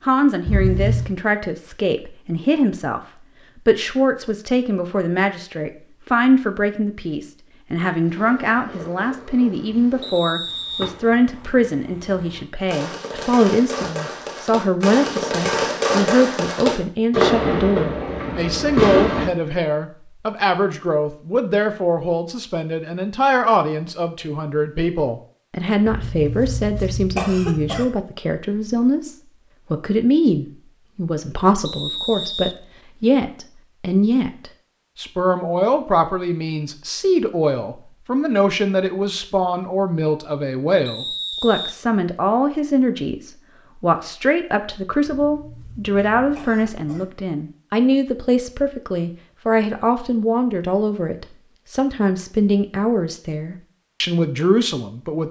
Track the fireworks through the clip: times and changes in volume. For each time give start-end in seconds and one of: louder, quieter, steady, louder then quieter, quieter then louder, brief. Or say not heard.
8.0-19.3 louder.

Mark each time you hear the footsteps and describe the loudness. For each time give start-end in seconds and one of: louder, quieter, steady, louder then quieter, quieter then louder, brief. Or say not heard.
not heard.